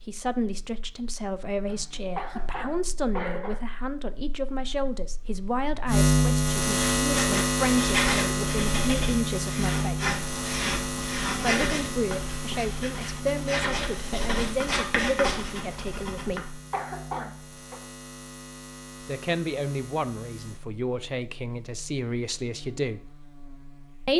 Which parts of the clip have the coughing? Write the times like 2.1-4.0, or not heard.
1.6-3.6, 16.2-17.8.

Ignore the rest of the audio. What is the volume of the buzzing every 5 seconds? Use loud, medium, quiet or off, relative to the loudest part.
quiet, loud, medium, quiet, quiet.